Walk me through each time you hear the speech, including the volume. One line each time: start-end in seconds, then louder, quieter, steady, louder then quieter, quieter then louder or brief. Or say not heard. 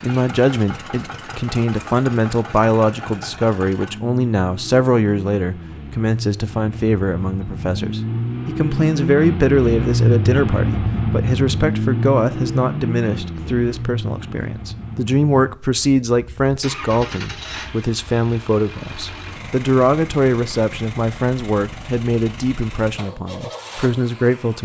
0.0-24.6 steady.